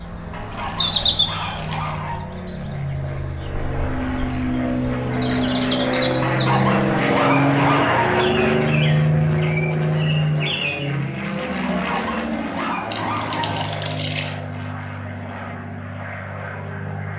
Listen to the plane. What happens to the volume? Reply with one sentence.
The volume of the plane goes up, then down.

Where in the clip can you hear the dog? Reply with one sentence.
You can hear the dog from 0.3 to 2.2 s, from 6.2 to 8.2 s and from 11.6 to 13.7 s.